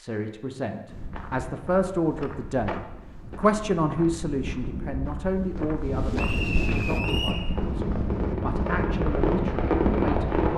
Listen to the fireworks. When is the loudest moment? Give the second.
10 s.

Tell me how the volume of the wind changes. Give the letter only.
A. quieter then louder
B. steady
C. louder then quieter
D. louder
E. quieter
D.